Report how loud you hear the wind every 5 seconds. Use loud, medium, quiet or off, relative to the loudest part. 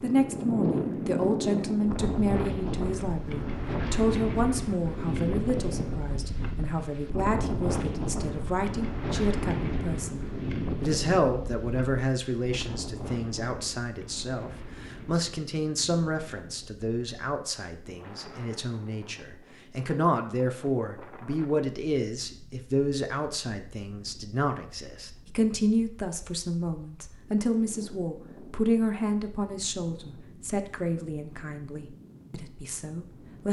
loud, loud, medium, quiet, quiet, quiet, quiet.